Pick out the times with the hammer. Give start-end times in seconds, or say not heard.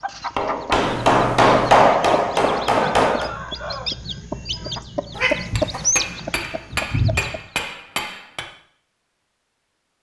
0.3-3.3, 5.5-8.4.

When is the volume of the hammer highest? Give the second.
2 s.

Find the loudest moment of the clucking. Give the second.
6 s.